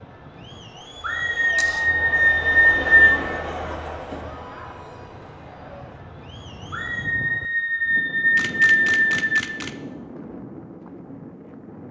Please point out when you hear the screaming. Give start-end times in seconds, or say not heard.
1.0-3.2, 6.7-9.4.